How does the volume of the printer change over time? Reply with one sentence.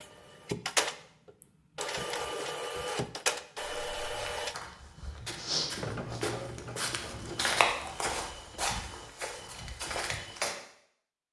The volume of the printer goes down.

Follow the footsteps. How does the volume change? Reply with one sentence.
The loudness of the footsteps goes up, then down.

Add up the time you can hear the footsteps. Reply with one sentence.
You can hear the footsteps for 7 seconds altogether.